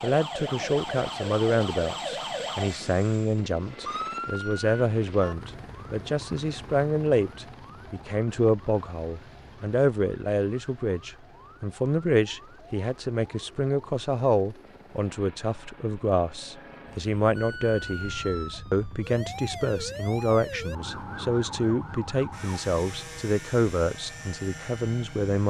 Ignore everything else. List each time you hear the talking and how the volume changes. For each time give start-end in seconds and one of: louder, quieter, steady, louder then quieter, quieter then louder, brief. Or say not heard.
0.0-25.4 steady.